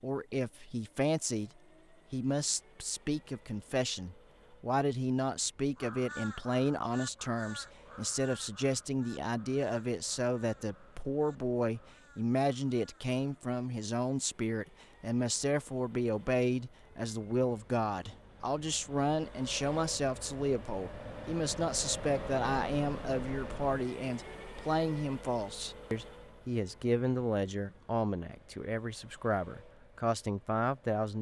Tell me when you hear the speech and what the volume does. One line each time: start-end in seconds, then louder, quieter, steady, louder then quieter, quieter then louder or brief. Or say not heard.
0.0-1.5 brief
2.1-31.1 steady.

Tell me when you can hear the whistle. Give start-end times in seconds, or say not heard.
not heard.